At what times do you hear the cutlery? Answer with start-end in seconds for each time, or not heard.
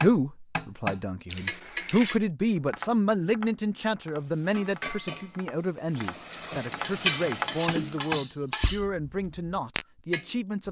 1.3-2.2, 6.8-8.8.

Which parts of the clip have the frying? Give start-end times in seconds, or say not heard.
4.2-8.1.